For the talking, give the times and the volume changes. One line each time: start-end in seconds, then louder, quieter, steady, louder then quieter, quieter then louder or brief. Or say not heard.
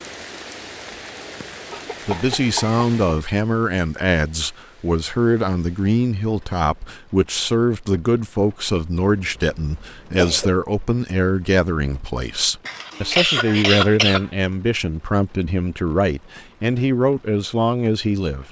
2.0-18.4 steady.